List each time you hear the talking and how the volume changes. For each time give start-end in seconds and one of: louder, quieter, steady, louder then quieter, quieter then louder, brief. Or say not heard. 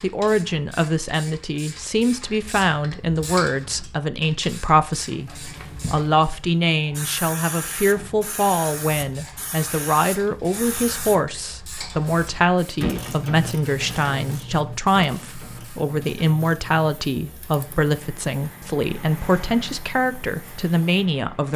0.0-21.5 steady.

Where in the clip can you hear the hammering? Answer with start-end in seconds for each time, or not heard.
not heard.